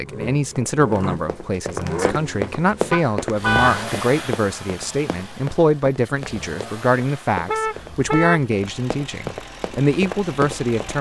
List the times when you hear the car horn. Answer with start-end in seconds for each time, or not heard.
2.9-3.9, 7.5-8.4.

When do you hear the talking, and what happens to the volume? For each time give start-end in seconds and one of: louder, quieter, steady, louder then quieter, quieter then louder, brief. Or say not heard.
0.0-10.9 steady.